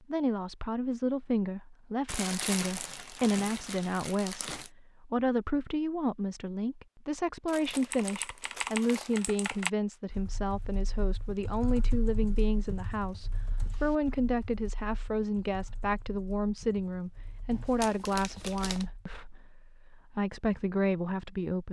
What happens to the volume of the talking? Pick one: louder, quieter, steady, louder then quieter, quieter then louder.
steady.